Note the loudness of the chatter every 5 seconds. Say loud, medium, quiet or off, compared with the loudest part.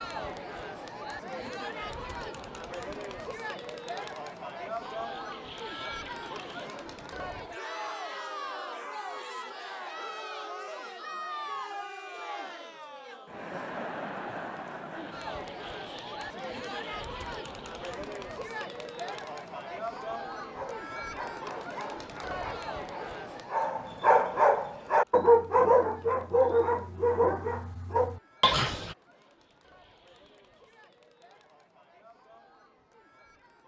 loud, loud, loud, loud, loud, quiet, quiet.